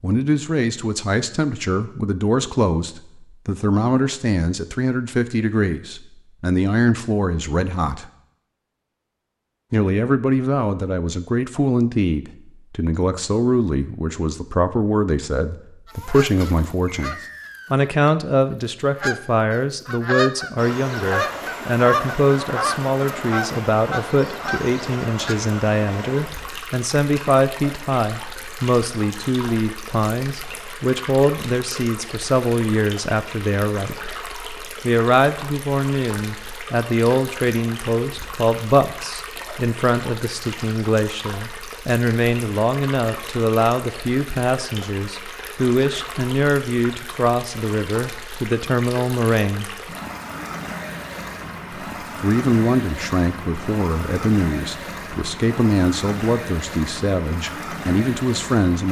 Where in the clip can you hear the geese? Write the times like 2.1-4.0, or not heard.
15.8-25.6.